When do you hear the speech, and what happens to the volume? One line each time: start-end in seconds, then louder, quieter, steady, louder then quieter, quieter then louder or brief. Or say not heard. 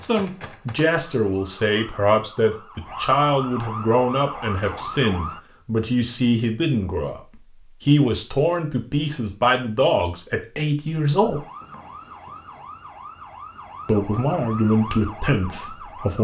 0.0-11.4 steady
13.8-16.1 brief.